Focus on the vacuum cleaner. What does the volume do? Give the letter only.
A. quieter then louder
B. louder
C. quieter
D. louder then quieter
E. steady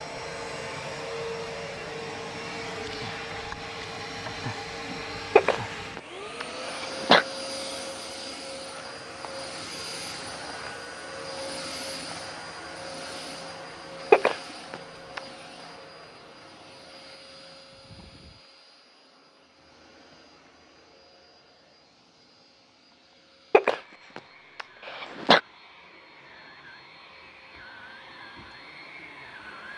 A.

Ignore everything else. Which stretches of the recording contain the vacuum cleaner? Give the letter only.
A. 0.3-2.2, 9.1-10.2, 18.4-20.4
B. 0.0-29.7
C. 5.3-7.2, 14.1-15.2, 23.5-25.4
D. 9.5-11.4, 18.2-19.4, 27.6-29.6
B.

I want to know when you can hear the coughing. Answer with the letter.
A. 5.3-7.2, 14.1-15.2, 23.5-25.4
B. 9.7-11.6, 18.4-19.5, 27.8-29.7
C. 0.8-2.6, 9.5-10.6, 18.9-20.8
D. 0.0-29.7
A.